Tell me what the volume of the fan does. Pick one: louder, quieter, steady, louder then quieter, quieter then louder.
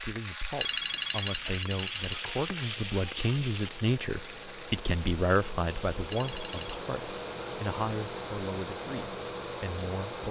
louder.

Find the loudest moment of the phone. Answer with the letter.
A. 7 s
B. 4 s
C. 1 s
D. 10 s
C.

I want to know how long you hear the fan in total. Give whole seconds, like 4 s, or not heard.
8 s.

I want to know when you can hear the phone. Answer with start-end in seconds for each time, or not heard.
0.6-2.2, 6.1-6.8.